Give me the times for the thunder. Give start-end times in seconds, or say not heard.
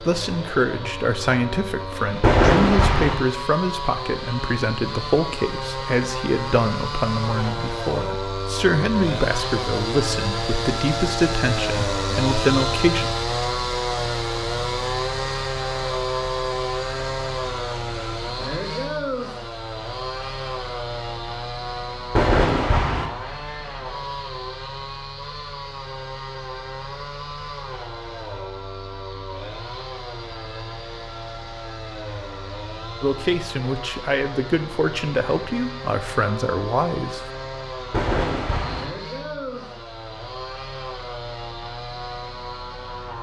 2.2-3.1, 22.1-23.1, 37.9-38.9.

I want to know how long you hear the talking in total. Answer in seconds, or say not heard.
17 s.